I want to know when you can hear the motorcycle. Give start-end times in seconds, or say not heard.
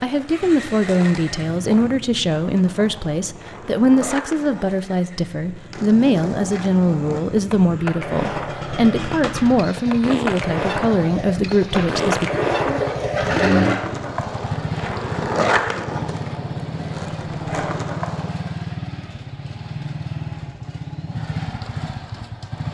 0.1-22.6.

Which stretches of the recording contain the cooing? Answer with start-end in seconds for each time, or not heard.
11.7-13.8.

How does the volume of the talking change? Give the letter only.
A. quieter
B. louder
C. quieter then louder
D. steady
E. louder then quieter
D.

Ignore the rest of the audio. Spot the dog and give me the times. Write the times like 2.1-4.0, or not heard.
not heard.